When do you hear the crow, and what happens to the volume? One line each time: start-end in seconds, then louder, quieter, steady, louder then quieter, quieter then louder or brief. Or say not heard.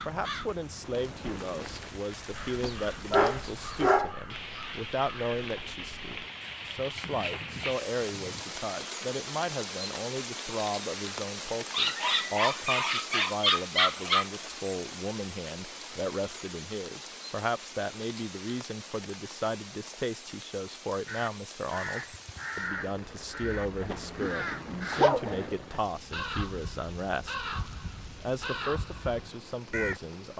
0.0-8.4 steady
21.1-30.0 steady.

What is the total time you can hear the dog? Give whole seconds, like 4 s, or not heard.
6 s.